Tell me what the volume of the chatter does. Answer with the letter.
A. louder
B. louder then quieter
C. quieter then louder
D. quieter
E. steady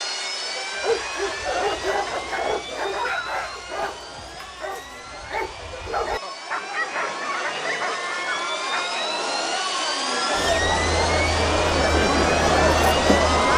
A.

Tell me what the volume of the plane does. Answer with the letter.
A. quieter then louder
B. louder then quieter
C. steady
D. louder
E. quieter
A.